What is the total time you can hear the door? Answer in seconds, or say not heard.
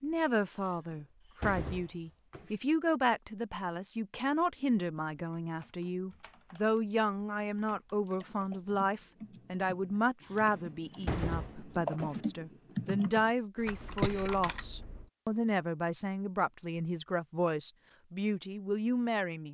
4 s.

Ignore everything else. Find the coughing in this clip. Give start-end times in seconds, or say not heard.
13.6-14.3.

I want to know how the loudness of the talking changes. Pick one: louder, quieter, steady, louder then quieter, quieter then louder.
steady.